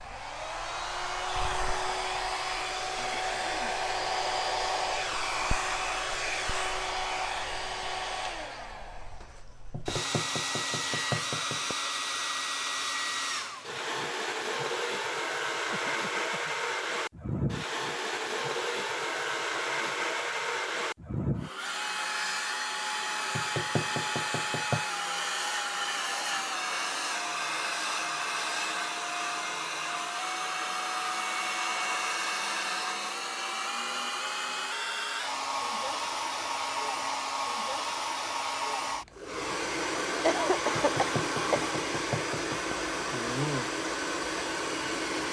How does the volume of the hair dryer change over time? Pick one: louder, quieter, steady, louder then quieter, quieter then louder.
steady.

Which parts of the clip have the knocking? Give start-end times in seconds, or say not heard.
9.7-11.8, 23.3-24.9, 40.8-42.8.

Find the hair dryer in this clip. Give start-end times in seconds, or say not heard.
0.0-45.2.